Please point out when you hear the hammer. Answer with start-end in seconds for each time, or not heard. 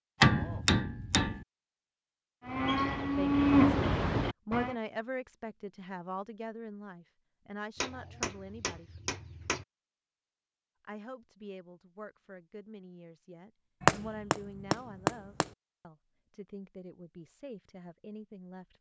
0.2-1.4, 7.8-9.7, 13.8-15.4.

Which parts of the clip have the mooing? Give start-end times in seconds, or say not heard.
2.5-4.8.